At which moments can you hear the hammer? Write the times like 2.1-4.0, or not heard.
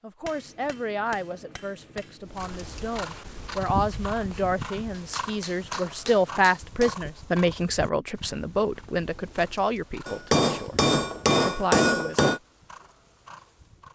0.2-2.3, 4.9-7.0, 10.1-12.4.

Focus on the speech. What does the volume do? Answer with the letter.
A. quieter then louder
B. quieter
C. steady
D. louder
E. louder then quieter
E.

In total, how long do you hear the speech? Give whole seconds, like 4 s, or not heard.
12 s.